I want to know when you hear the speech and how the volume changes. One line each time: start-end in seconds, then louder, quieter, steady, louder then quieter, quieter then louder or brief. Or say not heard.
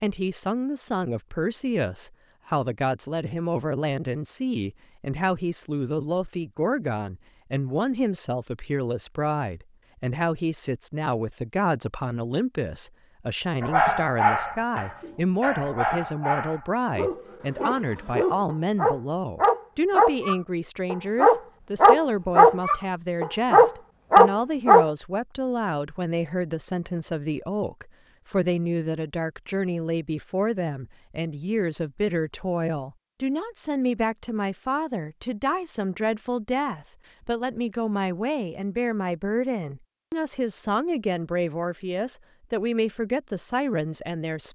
0.0-44.5 steady.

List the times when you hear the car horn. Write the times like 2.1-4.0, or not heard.
not heard.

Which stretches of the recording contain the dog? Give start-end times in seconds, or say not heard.
13.6-24.9.